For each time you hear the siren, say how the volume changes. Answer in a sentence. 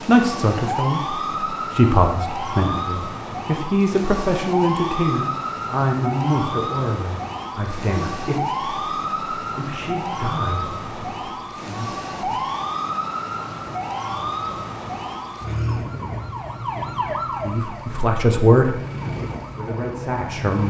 The siren can be heard from 0.0 to 20.6 s, at a steady volume.